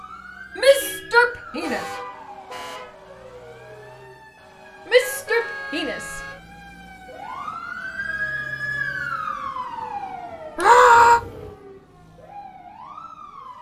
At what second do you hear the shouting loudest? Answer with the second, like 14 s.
11 s.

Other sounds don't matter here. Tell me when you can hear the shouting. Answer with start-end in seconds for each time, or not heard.
0.6-1.9, 4.9-6.2, 10.6-11.2.